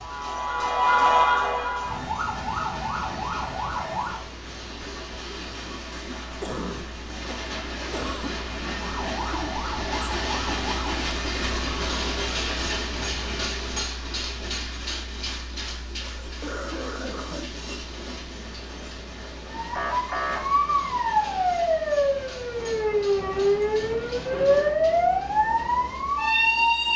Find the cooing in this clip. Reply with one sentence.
The cooing can't be heard in this clip.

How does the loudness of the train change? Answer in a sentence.
The loudness of the train goes up, then down.